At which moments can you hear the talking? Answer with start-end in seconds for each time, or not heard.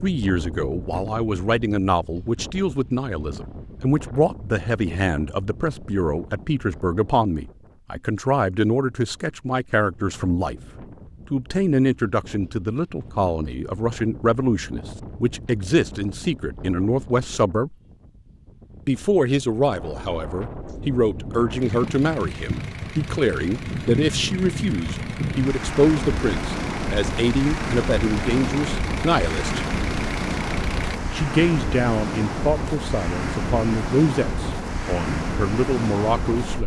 0.0-10.6, 11.3-17.8, 18.9-29.6, 31.1-36.6.